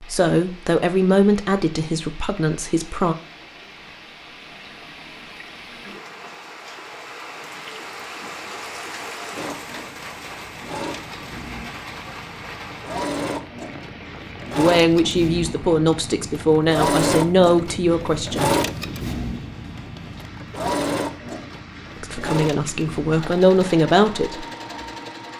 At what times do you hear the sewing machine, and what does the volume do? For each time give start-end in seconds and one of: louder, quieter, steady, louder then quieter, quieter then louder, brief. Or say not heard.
9.3-25.3 louder then quieter.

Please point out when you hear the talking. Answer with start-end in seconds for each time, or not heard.
0.0-3.1, 14.6-18.5, 22.0-24.4.